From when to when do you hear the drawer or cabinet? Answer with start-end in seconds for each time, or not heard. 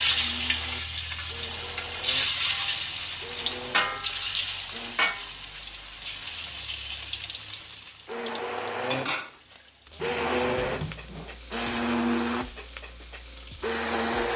9.9-11.4.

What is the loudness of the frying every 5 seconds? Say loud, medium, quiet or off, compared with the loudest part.
loud, medium, quiet.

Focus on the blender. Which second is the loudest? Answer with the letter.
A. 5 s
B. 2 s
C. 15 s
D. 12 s
D.